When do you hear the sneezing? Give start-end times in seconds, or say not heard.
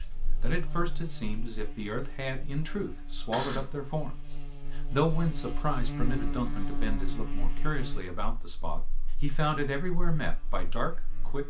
3.1-3.9.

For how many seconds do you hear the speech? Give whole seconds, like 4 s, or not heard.
11 s.